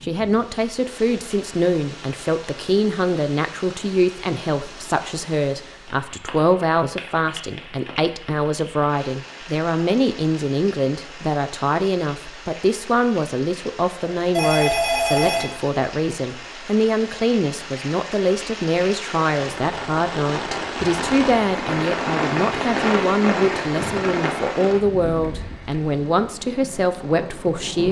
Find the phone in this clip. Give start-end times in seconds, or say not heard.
14.3-15.6.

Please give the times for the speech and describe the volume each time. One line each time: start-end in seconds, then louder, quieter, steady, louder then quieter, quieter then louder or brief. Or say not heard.
0.0-27.8 steady.